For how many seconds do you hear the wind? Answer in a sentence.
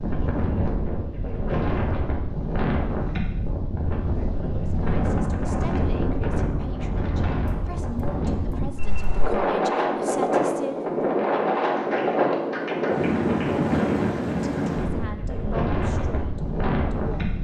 You can hear the wind for 17 seconds altogether.